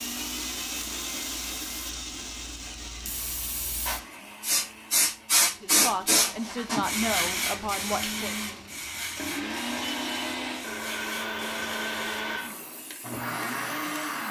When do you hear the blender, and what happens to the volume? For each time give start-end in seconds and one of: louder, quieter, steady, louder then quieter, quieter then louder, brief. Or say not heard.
0.0-14.2 quieter then louder.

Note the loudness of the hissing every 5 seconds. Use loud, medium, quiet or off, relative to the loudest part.
medium, loud, quiet.